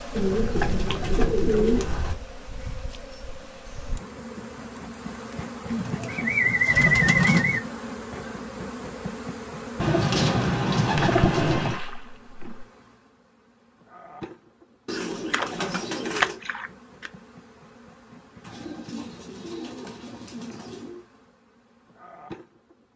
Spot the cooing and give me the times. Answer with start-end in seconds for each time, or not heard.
0.1-2.1, 5.7-7.6, 9.8-11.8, 14.8-16.4, 18.4-21.1.